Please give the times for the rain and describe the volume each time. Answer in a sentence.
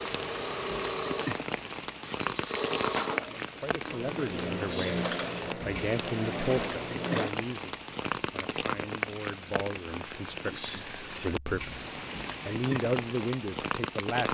The rain can be heard from 0.0 to 14.2 s, at a steady volume.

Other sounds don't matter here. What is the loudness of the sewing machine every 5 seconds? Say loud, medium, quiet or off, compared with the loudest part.
loud, loud, off.